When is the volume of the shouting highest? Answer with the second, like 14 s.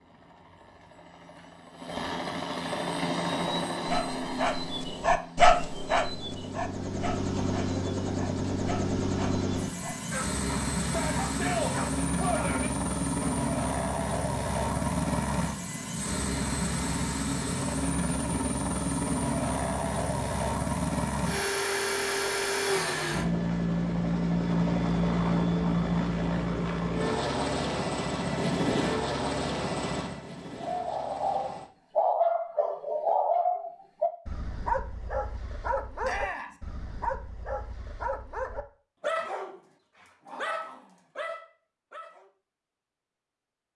12 s.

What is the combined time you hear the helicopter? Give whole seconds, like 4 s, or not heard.
32 s.